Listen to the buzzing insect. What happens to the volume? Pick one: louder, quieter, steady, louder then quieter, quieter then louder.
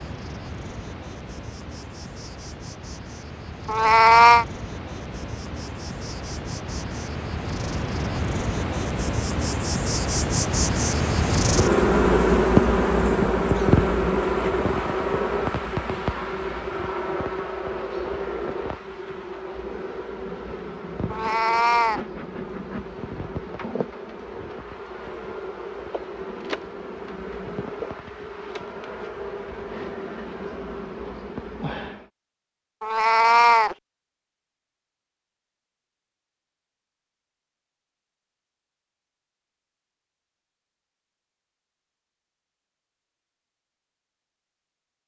louder then quieter.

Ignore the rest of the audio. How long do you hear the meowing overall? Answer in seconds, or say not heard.
3 s.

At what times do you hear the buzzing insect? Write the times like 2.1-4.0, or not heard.
0.0-32.1.